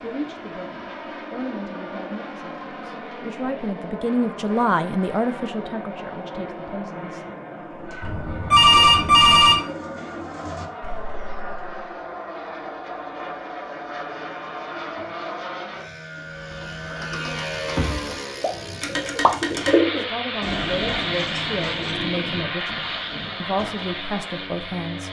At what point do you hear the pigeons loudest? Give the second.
20 s.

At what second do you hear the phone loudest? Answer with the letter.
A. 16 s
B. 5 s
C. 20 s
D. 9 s
D.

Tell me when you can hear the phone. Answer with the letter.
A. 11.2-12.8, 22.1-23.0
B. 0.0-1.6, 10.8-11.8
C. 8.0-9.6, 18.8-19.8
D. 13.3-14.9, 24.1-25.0
C.